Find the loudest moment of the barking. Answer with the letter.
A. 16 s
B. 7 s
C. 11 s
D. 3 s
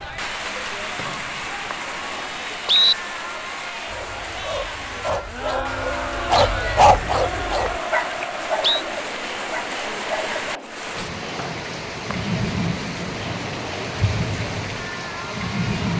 B.